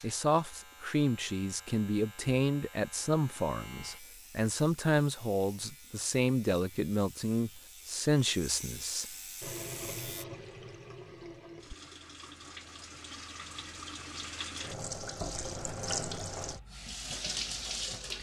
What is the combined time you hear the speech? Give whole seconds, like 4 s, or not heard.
9 s.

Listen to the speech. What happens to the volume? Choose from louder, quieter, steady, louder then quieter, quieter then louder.
steady.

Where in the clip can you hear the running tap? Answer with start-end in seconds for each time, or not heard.
9.4-18.1.